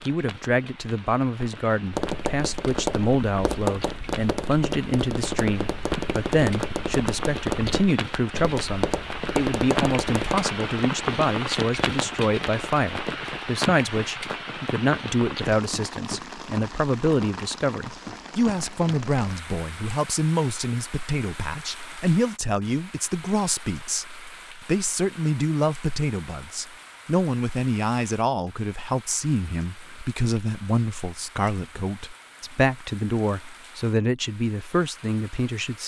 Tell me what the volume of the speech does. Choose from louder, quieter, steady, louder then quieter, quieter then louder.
steady.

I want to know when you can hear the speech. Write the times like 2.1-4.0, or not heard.
0.0-35.8.